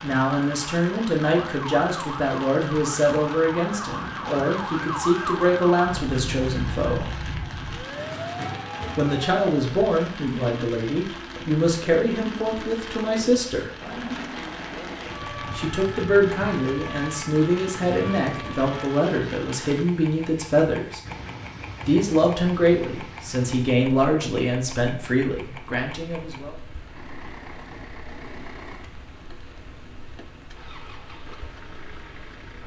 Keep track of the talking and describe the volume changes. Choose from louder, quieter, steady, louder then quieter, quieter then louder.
steady.